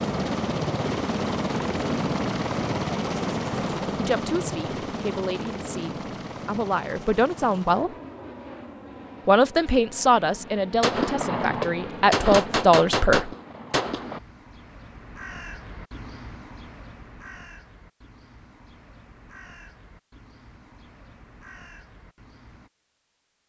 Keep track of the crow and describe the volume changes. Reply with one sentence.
The loudness of the crow goes down.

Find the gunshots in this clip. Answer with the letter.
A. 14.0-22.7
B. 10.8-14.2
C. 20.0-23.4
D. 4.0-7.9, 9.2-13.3
B.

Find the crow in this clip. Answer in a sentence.
The crow can be heard from 14.0 to 22.7 s.